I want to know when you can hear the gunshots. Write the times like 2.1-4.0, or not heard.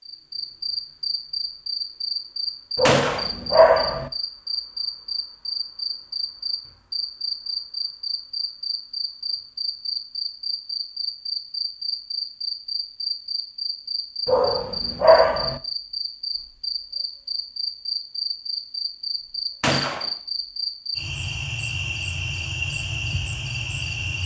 2.9-3.3, 19.6-20.1.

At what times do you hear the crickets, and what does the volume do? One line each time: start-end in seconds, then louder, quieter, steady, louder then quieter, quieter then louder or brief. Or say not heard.
0.0-24.2 steady.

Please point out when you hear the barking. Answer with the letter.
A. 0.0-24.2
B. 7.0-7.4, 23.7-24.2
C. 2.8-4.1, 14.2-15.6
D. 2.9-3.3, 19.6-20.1
C.